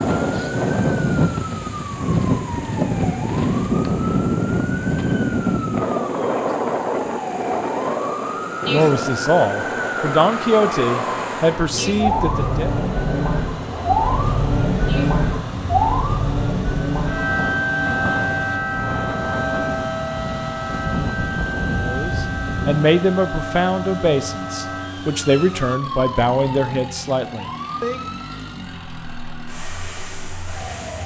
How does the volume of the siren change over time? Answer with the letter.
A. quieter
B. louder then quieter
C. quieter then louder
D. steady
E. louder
B.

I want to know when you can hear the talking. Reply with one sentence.
You can hear the talking from 8.7 to 12.7 s and from 21.8 to 28.0 s.